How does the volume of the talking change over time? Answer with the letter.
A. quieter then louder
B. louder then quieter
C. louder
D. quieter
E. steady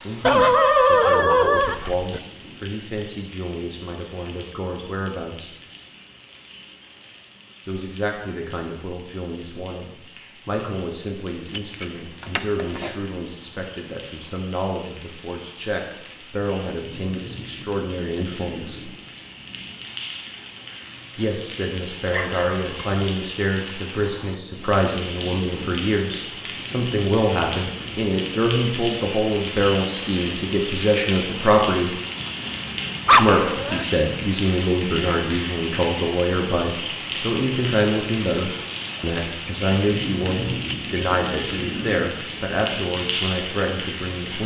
C.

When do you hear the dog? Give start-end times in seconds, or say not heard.
0.2-2.2, 22.1-22.9, 33.0-33.9.